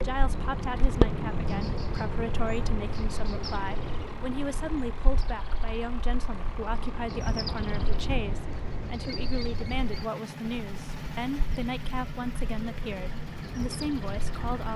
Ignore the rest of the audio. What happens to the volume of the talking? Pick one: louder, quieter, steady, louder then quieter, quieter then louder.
steady.